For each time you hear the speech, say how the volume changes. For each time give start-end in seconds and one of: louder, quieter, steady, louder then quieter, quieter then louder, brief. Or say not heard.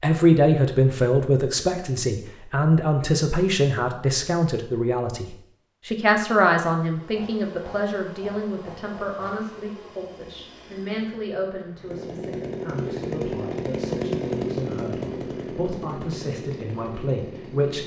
0.0-17.8 quieter.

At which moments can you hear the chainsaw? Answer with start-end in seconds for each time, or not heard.
6.8-17.8.